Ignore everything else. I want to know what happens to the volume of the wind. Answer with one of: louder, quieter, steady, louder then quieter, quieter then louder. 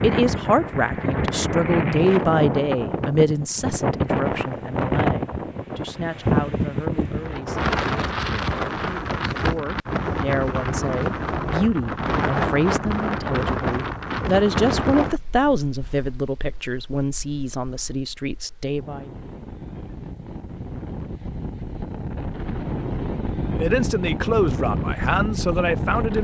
quieter then louder.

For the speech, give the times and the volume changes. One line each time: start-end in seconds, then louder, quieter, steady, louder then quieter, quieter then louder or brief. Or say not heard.
0.0-19.1 quieter then louder
23.6-26.1 brief.